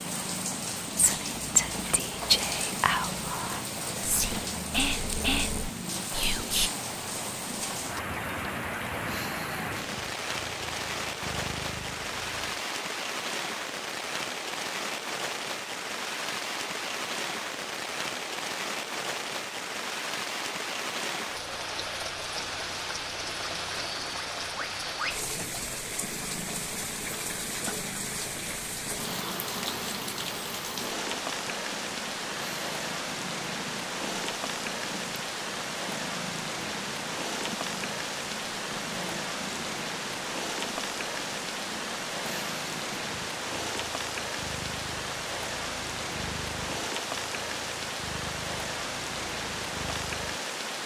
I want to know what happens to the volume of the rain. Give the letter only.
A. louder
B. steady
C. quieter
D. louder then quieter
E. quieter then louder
B.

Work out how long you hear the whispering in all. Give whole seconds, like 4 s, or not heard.
6 s.